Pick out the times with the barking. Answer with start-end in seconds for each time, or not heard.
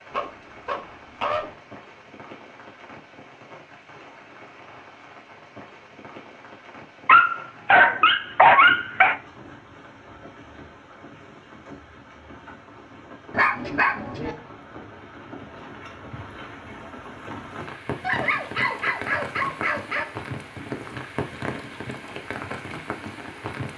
0.1-1.5, 7.0-9.2, 13.3-14.3, 18.0-20.1.